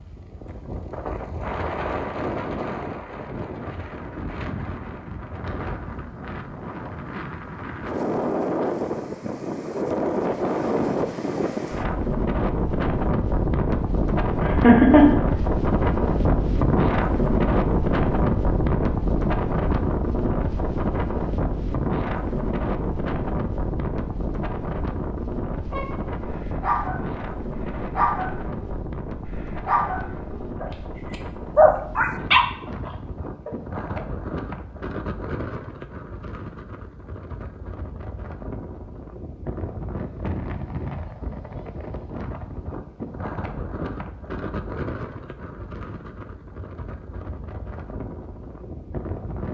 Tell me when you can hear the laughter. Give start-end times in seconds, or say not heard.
14.4-15.2.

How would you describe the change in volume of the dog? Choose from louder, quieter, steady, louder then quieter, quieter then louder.
louder.